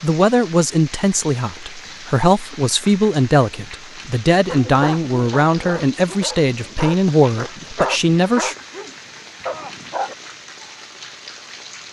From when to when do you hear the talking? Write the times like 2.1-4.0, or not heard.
0.0-8.6.